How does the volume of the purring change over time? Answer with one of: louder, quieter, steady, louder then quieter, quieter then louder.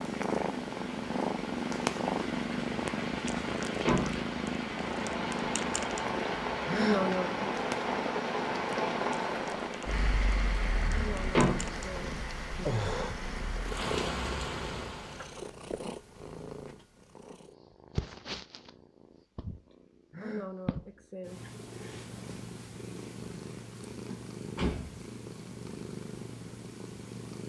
quieter.